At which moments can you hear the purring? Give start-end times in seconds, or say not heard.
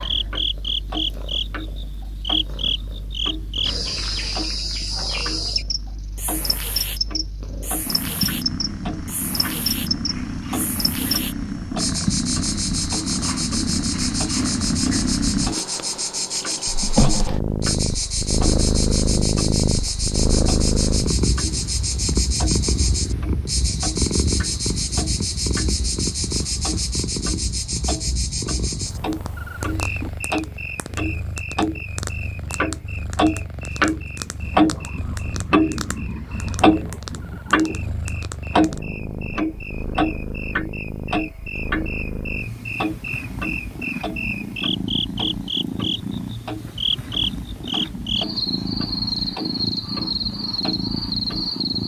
0.0-51.8.